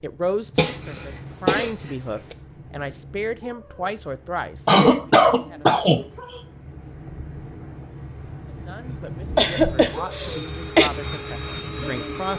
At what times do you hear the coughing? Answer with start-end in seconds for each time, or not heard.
0.6-1.7, 4.7-6.3, 8.8-10.9.